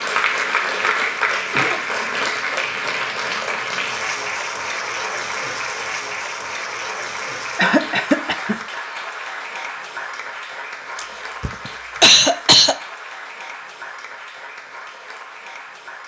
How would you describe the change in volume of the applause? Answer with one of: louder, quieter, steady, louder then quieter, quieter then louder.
quieter.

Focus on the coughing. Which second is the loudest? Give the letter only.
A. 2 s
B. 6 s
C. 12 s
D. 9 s
C.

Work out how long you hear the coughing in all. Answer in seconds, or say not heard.
4 s.